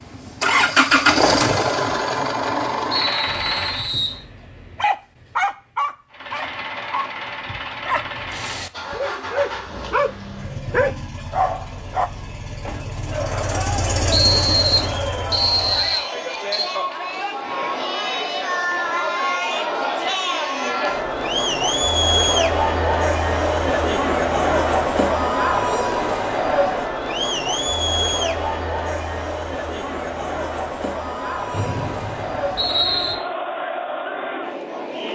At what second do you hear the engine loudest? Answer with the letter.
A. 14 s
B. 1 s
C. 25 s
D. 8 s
B.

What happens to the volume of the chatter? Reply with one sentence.
The loudness of the chatter goes up, then down.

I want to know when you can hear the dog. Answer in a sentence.
You can hear the dog from 3.2 to 12.1 s.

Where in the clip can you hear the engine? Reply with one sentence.
The engine can be heard from 0.0 to 4.0 s and from 6.1 to 16.0 s.